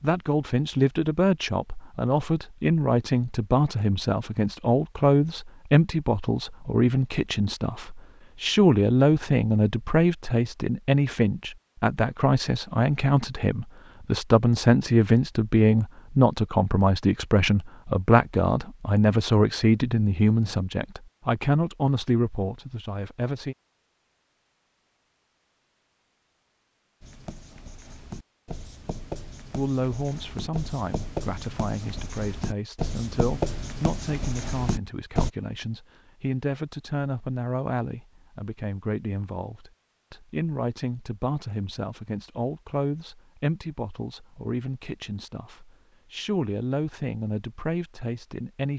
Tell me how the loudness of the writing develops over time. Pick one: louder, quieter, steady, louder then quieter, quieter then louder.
louder.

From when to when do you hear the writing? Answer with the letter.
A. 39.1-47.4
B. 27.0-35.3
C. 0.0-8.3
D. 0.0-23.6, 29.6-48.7
B.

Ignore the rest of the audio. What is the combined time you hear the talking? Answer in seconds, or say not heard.
43 s.